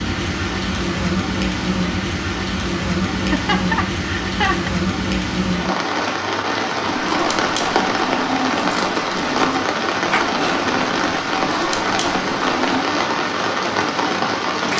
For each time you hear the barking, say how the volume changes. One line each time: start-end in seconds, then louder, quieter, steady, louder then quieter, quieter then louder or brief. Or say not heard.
6.8-12.8 steady.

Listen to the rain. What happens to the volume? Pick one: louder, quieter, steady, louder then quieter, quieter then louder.
steady.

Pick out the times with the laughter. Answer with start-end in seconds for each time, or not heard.
3.1-4.7.